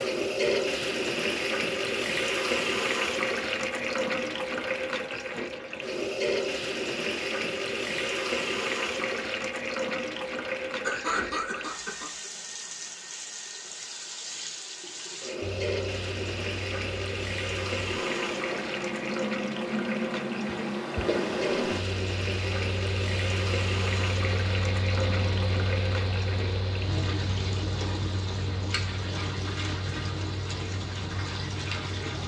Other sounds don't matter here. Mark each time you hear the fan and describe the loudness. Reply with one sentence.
The fan can be heard from 15.4 to 32.1 s, getting louder then quieter.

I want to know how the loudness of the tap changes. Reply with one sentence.
The volume of the tap goes down.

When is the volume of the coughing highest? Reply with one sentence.
The volume of the coughing peaks at 11 seconds.